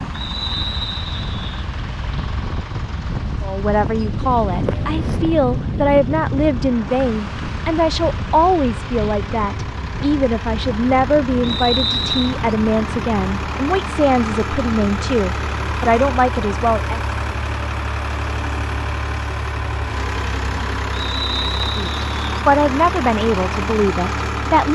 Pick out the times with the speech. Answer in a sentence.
The speech can be heard from 3.4 to 17.0 s and from 21.8 to 24.6 s.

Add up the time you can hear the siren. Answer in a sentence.
The siren can't be heard in this clip.